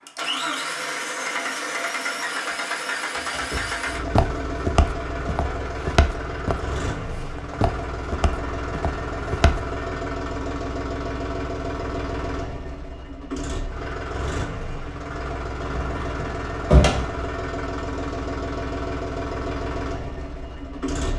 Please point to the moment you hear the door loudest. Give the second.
17 s.